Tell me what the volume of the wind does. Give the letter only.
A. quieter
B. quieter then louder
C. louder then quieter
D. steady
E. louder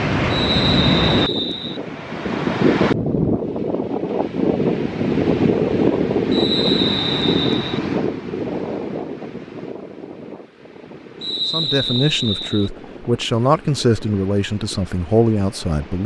A.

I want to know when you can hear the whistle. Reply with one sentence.
You can hear the whistle from 0.3 to 1.8 s, from 6.3 to 7.8 s and from 11.2 to 12.7 s.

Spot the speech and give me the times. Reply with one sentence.
You can hear the speech from 11.5 to 16.0 s.